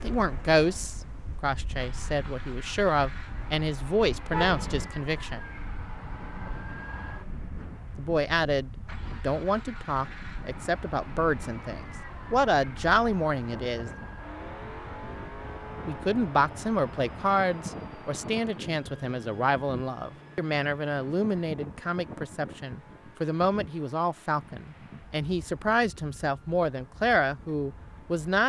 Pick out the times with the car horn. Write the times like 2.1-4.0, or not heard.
4.3-5.0.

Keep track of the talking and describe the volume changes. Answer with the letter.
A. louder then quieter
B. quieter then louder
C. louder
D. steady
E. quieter
D.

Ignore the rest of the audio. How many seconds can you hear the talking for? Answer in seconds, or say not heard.
24 s.